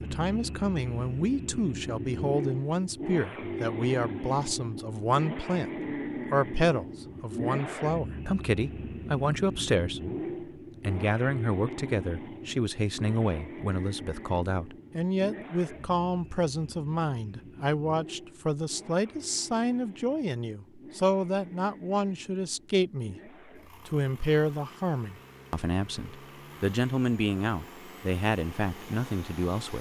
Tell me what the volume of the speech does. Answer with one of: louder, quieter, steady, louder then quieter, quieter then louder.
steady.